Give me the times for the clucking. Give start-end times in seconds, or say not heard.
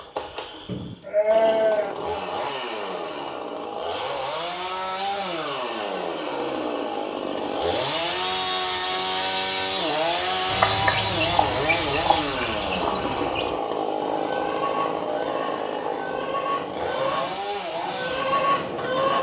10.4-19.1.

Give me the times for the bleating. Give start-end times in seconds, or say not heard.
0.7-1.9.